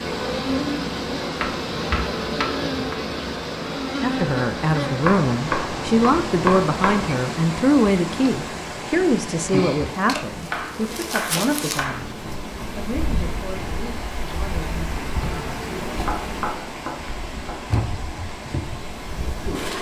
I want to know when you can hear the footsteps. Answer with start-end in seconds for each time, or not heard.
not heard.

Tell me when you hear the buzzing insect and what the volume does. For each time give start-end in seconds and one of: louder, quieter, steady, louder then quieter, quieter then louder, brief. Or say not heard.
0.0-19.7 quieter.